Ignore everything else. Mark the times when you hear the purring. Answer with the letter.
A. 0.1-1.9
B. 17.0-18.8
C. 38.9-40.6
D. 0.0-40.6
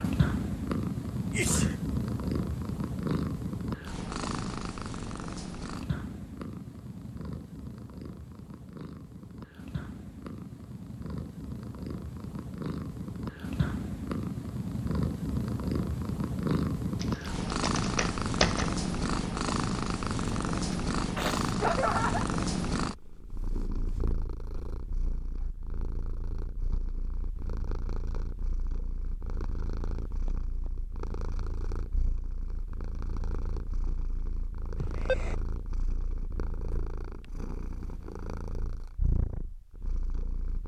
D.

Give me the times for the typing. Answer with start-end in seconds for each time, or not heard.
17.0-18.8.